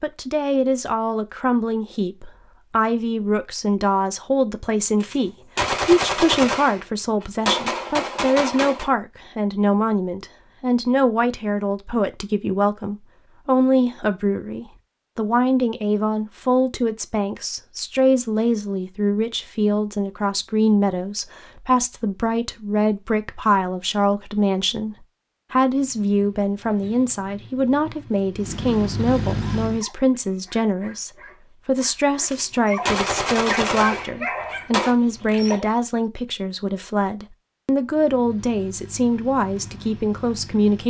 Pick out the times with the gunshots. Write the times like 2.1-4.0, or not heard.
5.0-8.9, 32.2-35.0.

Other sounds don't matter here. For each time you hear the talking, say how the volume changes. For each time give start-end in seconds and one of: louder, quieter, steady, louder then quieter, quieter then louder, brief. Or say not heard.
0.0-40.8 steady.